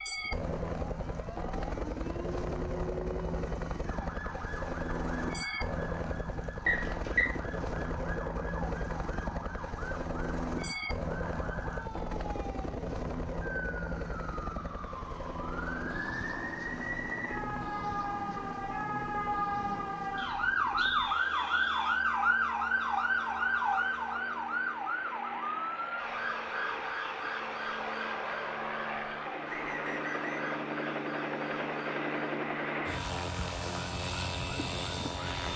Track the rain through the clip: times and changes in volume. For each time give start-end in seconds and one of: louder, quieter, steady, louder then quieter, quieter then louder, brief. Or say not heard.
not heard.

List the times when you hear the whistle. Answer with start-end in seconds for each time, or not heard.
6.7-7.3, 20.1-22.0, 29.4-30.6.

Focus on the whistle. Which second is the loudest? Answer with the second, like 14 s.
7 s.